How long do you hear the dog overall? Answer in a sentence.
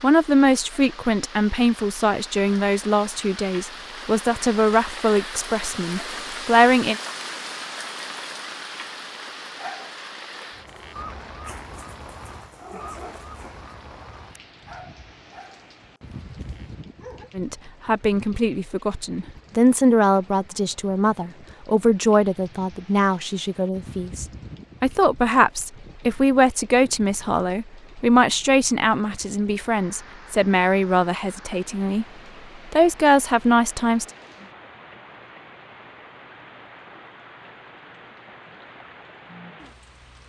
The dog can be heard for 8 seconds in total.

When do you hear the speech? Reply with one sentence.
The speech can be heard from 0.0 to 7.0 s, from 17.4 to 32.0 s and from 32.7 to 34.0 s.